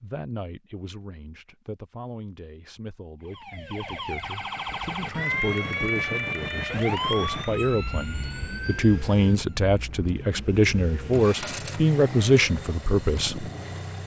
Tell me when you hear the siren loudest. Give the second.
6 s.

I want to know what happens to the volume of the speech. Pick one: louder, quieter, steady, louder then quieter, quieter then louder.
louder.